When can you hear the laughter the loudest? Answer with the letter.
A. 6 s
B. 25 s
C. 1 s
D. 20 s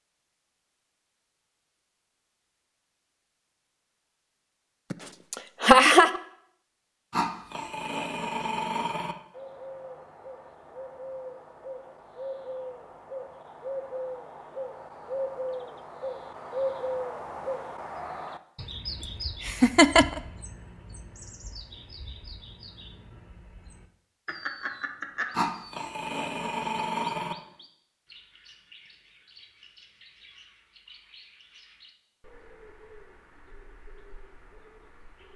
A.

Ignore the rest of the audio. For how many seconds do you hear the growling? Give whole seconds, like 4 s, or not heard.
4 s.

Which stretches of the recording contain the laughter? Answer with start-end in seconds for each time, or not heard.
4.9-6.2, 19.0-20.2, 24.2-25.4.